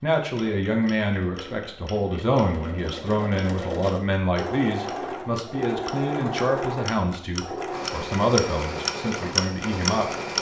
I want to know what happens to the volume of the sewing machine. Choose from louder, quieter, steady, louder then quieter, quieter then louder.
louder.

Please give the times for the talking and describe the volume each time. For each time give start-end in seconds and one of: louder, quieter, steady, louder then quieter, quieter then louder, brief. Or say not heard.
0.0-10.3 steady.